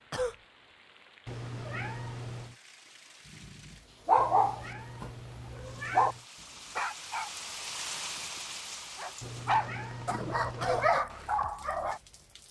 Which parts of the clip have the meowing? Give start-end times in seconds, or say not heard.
1.2-2.5, 4.2-6.2, 9.2-10.9.